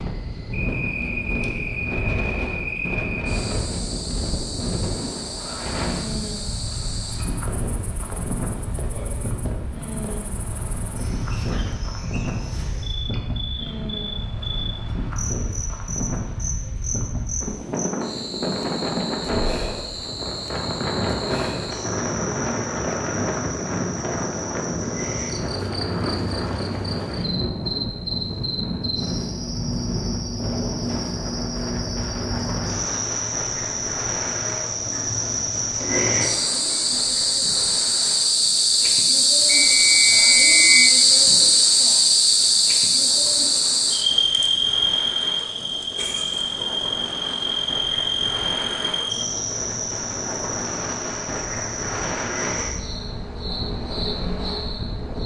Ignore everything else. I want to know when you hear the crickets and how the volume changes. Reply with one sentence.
The crickets can be heard from 0.0 to 55.2 s, getting louder then quieter.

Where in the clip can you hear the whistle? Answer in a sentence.
The whistle can be heard from 39.5 to 41.0 s.